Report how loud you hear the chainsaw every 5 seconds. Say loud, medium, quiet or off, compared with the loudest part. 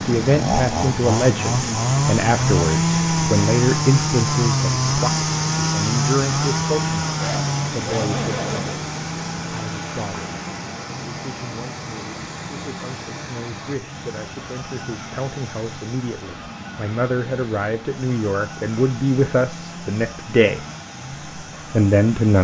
loud, loud, quiet, quiet, quiet.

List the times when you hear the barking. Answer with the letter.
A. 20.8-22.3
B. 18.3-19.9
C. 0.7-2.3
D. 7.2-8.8
D.